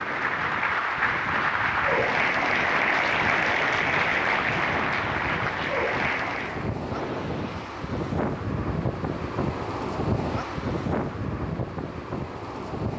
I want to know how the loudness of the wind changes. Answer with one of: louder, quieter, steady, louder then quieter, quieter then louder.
louder.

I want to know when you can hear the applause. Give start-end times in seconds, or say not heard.
0.0-6.8.